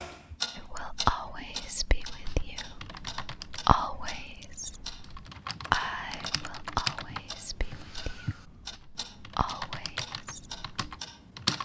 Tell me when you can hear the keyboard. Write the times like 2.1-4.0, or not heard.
2.0-3.6, 5.0-11.6.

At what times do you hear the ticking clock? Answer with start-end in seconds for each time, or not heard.
0.0-11.6.